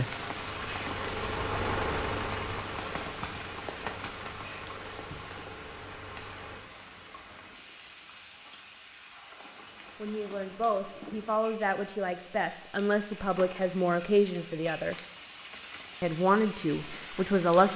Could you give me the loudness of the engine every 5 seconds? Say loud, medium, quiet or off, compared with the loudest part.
loud, medium, off, off.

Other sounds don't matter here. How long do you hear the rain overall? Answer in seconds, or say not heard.
18 s.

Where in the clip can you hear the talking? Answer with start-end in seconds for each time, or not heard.
10.0-14.9, 16.0-17.7.